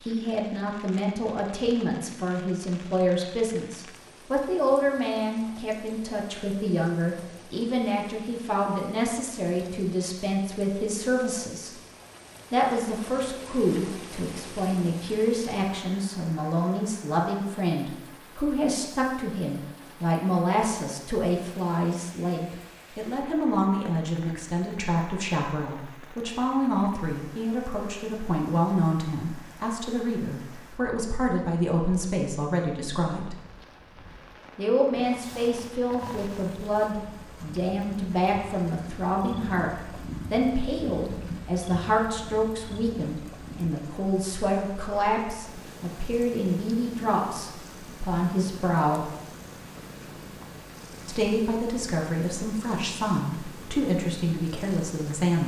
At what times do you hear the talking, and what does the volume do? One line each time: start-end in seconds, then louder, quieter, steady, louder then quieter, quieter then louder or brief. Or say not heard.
0.0-11.7 steady
12.5-33.4 steady
34.5-49.1 steady
51.0-55.4 steady.